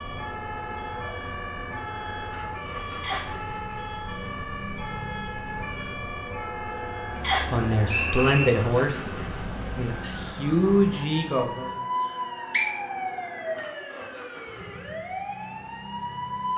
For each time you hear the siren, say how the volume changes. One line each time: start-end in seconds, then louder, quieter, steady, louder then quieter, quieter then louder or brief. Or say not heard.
0.0-16.5 steady.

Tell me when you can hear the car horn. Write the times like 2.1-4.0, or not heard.
not heard.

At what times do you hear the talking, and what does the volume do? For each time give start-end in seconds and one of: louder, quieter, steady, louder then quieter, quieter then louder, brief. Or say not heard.
7.5-11.7 quieter then louder.